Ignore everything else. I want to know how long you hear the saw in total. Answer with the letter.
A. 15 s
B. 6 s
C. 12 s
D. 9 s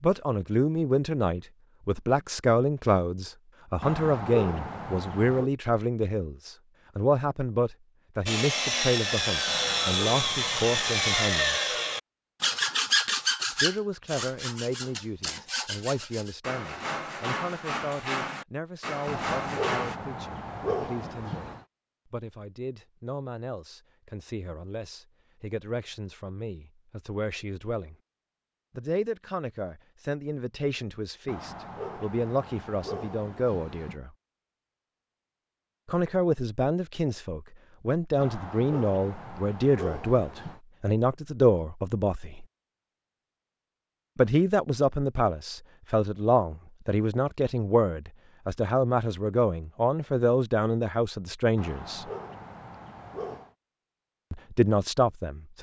C.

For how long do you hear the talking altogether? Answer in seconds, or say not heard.
47 s.